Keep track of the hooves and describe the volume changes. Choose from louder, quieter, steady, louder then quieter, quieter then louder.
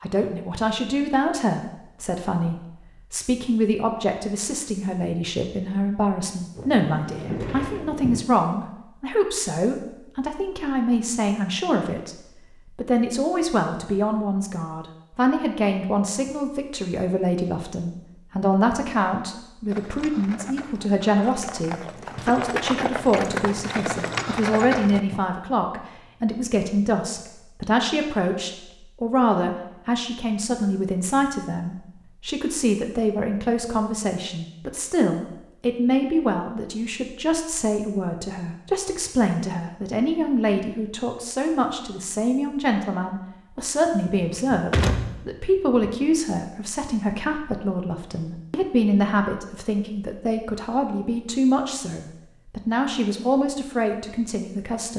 louder.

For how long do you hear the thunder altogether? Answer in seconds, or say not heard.
2 s.